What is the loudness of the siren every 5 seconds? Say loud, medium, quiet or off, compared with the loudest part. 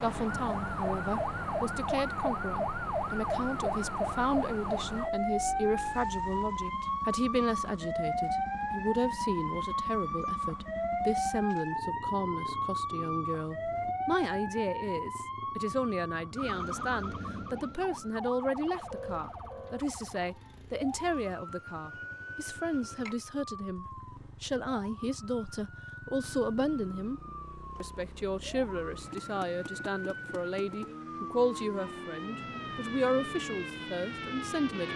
loud, loud, loud, medium, quiet, quiet, medium.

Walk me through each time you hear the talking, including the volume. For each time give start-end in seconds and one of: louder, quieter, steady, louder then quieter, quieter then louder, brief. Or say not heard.
0.0-34.9 steady.